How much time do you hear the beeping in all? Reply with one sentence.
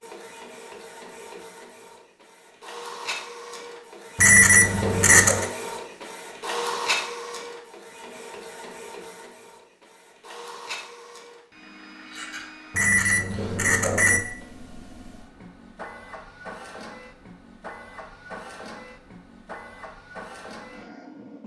The beeping can be heard for 3 seconds in total.